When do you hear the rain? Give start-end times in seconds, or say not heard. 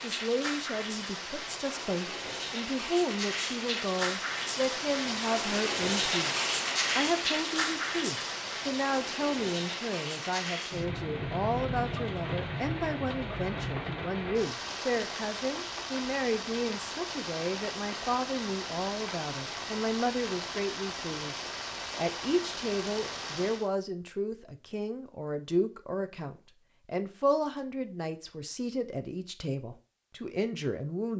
0.0-23.7.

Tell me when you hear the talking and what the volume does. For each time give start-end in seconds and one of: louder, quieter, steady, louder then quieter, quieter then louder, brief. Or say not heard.
0.0-31.1 steady.